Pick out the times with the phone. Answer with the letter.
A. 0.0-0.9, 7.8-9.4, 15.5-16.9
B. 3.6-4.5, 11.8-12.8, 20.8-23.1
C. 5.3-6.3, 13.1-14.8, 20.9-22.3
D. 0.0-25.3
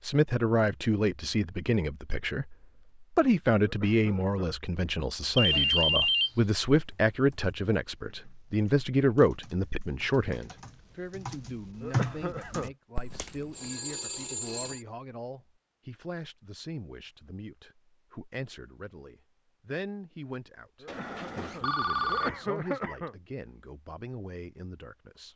C.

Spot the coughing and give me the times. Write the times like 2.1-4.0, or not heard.
3.6-4.5, 11.8-12.8, 20.8-23.1.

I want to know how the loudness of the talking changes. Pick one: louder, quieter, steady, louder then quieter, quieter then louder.
quieter.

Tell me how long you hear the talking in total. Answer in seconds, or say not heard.
25 s.